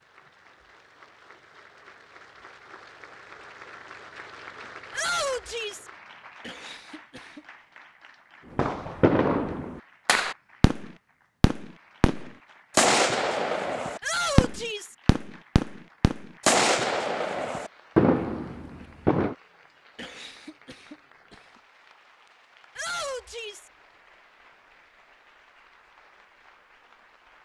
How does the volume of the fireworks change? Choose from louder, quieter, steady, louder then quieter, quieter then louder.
steady.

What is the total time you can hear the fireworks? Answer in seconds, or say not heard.
11 s.